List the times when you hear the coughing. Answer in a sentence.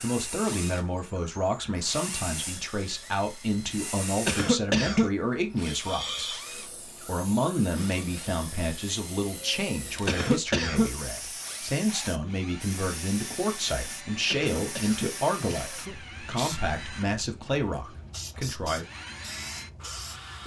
The coughing can be heard from 4.2 to 5.1 s, from 10.1 to 10.9 s and from 14.2 to 15.9 s.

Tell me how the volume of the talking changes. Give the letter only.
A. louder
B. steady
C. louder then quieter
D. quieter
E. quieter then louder
B.